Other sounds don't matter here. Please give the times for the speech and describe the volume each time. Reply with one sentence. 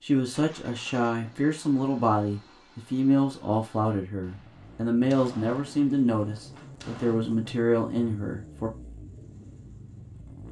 You can hear the speech from 0.0 to 8.7 s, at a steady volume.